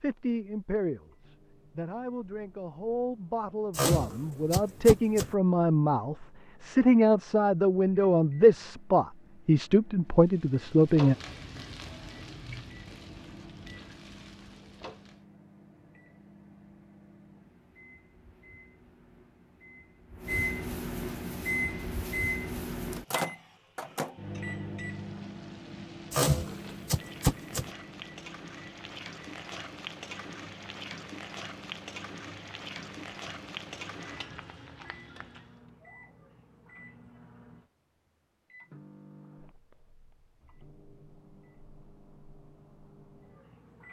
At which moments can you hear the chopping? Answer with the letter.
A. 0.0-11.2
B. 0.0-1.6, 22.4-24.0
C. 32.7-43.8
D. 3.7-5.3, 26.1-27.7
D.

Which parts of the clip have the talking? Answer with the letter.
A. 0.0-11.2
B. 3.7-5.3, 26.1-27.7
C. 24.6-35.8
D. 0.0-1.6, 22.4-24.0
A.